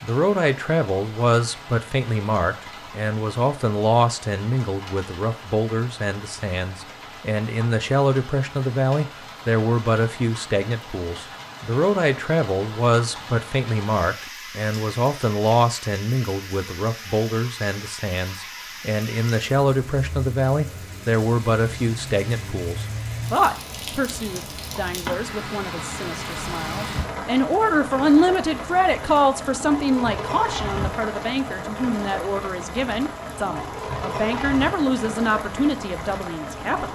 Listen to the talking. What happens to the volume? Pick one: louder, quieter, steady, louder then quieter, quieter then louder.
steady.